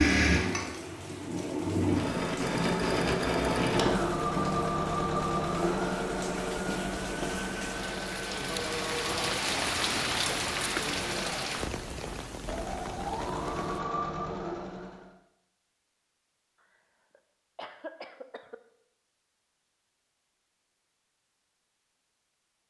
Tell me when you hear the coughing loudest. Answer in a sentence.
The volume of the coughing peaks at 9 seconds.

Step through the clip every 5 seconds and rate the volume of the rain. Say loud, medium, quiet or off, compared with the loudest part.
quiet, loud, loud, off, off.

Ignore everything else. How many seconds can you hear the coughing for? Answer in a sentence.
You can hear the coughing for 2 seconds altogether.